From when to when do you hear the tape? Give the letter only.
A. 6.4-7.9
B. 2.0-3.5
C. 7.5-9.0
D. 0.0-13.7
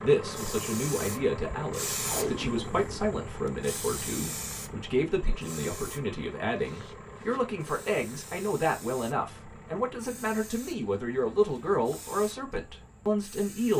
B.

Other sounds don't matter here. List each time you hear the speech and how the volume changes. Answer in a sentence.
You can hear the speech from 0.0 to 13.7 s, at a steady volume.